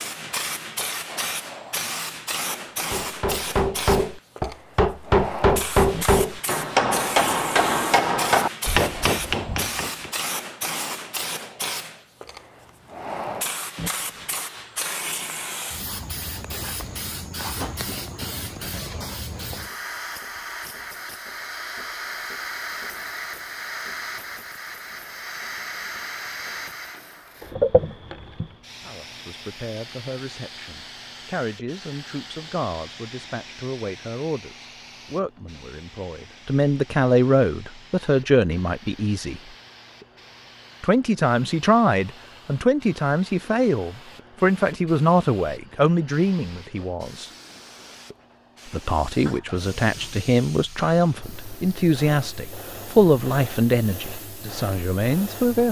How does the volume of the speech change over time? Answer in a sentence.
The loudness of the speech goes up.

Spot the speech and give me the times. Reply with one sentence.
The speech can be heard from 28.9 to 39.4 s, from 40.8 to 47.2 s and from 48.7 to 55.6 s.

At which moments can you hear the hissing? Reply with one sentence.
You can hear the hissing from 0.0 to 55.6 s.